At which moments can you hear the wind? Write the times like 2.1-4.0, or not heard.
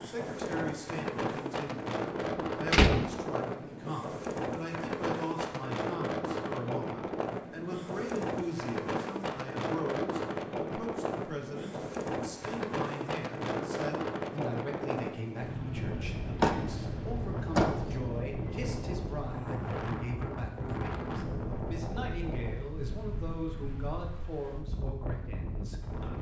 0.0-26.1.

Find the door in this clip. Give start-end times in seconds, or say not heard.
2.2-3.0, 16.4-18.0.